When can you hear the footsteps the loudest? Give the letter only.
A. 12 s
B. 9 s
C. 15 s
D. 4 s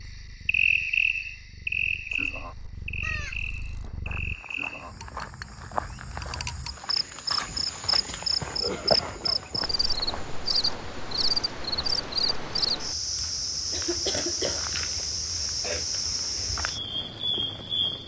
B.